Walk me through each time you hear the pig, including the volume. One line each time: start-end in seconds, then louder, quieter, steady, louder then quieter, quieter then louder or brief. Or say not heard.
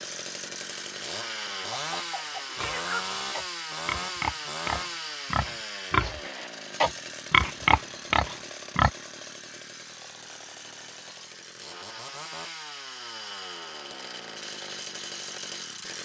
2.5-8.9 louder.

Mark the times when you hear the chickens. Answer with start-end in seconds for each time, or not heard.
1.7-3.2.